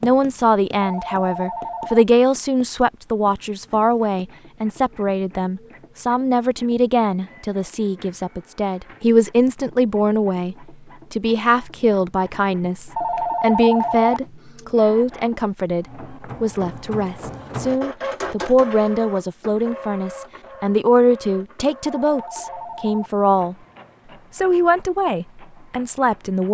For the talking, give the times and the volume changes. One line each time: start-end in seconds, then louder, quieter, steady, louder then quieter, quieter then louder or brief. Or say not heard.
0.0-23.6 steady
24.4-26.4 brief.